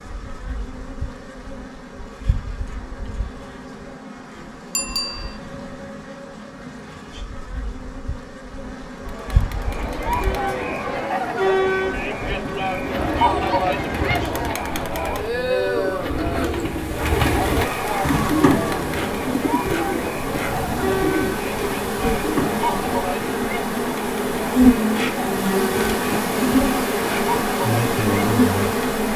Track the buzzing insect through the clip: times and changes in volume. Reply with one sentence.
The buzzing insect can be heard from 0.0 to 29.1 s, getting louder.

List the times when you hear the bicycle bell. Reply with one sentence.
You can hear the bicycle bell from 4.8 to 5.4 s.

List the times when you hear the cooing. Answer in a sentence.
You can hear the cooing from 12.8 to 23.1 s.